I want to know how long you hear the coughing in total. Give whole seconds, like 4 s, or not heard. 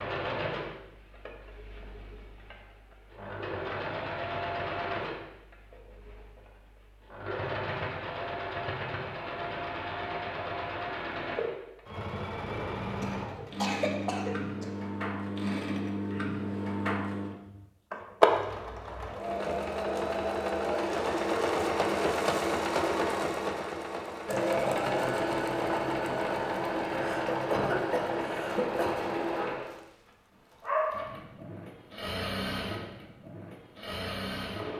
4 s.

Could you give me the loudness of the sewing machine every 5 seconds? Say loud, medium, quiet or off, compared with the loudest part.
medium, medium, medium, loud, loud, loud, medium.